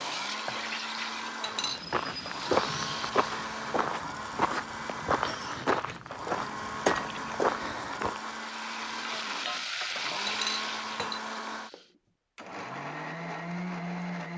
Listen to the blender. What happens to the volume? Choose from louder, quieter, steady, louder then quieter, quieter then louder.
steady.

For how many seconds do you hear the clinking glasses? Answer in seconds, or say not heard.
2 s.